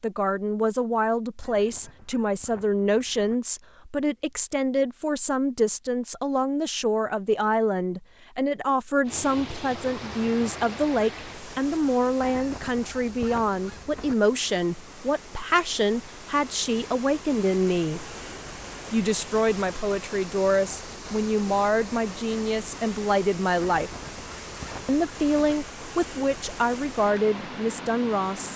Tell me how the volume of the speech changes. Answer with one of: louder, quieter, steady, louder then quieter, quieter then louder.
steady.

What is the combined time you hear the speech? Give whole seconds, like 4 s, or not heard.
27 s.